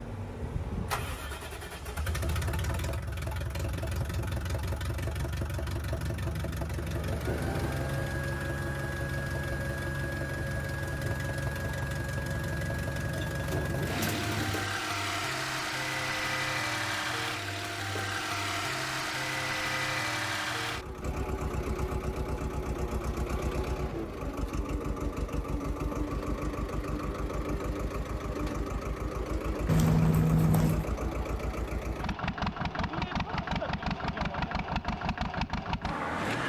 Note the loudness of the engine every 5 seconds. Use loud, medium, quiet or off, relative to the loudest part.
medium, loud, loud, loud, loud, loud, loud, loud.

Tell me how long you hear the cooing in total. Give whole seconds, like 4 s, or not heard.
2 s.